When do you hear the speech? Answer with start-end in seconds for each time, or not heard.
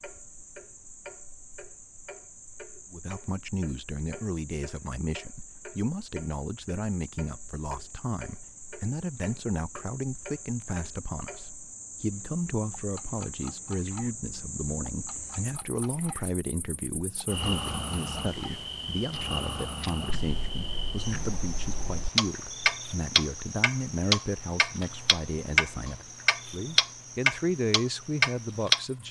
2.9-29.0.